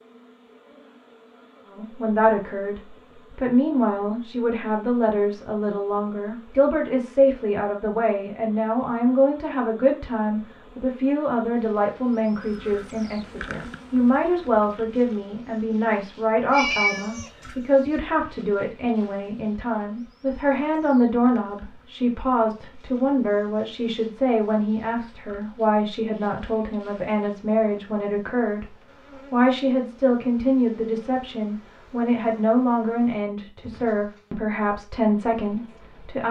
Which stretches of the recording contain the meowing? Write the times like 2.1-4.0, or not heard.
16.5-17.9.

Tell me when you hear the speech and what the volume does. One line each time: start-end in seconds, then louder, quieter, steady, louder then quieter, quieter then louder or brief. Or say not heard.
1.6-36.2 steady.